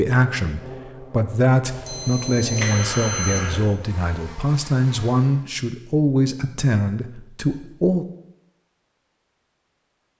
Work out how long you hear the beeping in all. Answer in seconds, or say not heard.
2 s.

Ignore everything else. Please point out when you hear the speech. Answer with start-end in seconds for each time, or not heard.
0.0-8.1.